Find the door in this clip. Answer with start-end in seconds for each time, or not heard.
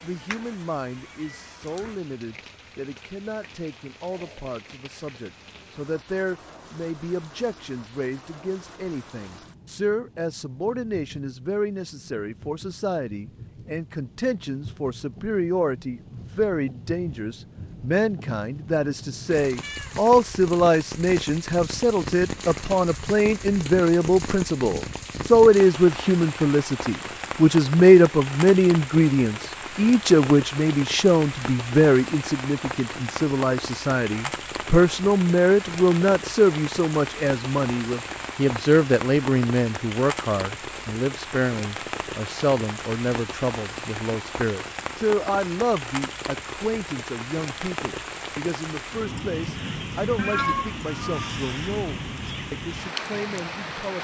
not heard.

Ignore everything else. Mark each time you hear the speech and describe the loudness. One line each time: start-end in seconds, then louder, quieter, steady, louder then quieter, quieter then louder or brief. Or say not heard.
0.0-53.9 louder then quieter.